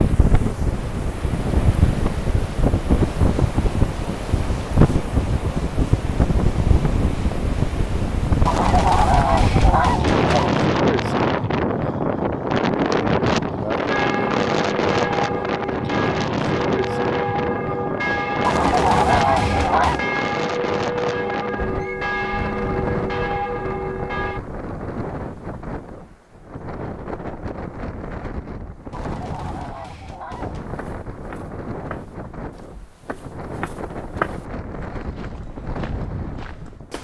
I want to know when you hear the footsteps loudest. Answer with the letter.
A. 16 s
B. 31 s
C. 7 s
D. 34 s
D.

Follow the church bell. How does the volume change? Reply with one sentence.
The loudness of the church bell stays about the same.